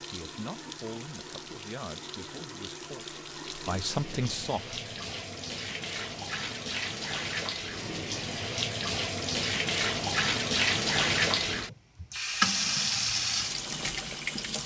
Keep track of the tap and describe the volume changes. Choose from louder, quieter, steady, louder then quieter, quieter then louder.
louder.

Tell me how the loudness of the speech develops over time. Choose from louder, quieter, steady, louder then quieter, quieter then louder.
quieter then louder.